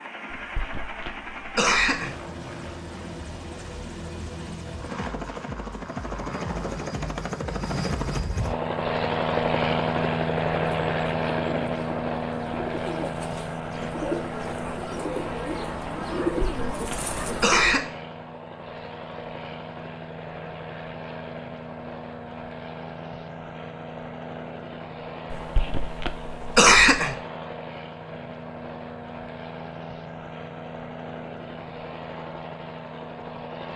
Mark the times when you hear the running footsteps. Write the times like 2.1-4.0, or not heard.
not heard.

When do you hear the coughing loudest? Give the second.
27 s.